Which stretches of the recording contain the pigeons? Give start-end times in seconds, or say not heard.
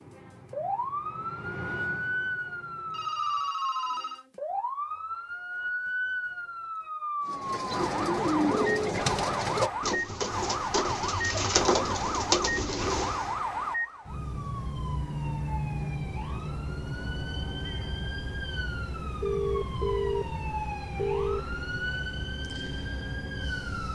7.2-13.3.